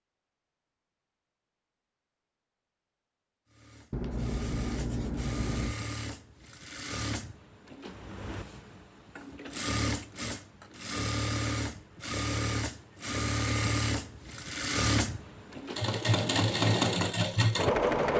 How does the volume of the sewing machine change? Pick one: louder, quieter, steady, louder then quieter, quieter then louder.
louder.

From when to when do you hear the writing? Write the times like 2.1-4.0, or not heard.
3.9-5.8.